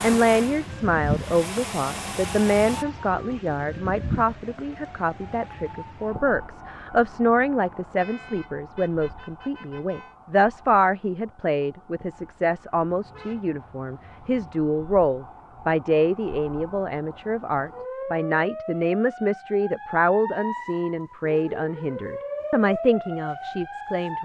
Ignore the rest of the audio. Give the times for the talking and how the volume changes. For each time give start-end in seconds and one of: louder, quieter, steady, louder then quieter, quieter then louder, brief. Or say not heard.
0.0-24.1 steady.